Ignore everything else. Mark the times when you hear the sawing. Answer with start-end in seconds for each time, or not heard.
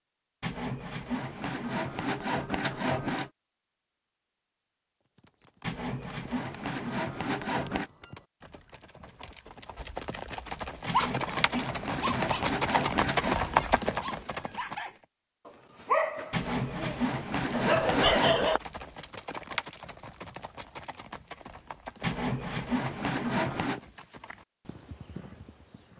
0.4-3.3, 5.6-7.9, 10.8-13.3, 16.3-18.6, 22.0-23.8.